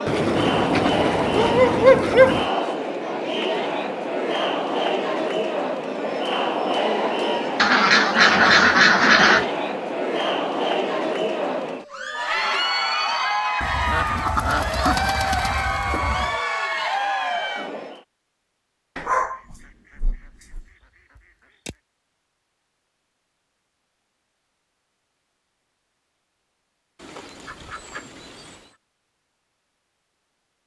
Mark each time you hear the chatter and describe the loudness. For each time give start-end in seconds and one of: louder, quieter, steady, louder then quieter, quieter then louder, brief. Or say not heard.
0.0-18.0 steady.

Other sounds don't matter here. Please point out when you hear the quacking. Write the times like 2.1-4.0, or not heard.
0.1-2.5, 7.5-9.4, 13.6-16.4, 19.1-21.8, 26.9-28.8.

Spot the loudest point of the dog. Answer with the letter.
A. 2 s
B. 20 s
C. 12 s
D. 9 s
A.